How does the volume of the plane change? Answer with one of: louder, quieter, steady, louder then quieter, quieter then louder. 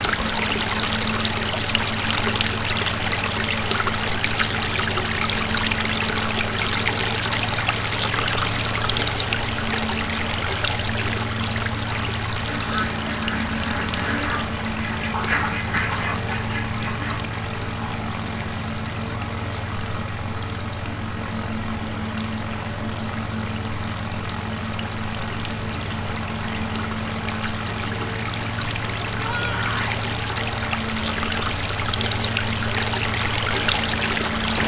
steady.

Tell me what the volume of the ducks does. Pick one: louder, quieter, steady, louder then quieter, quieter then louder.
louder then quieter.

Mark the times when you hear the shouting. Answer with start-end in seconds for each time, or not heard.
29.2-30.1.